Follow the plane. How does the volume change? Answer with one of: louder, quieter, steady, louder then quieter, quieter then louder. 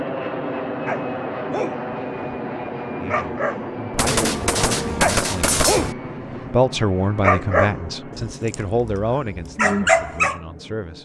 quieter.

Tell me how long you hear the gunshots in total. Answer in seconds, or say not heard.
2 s.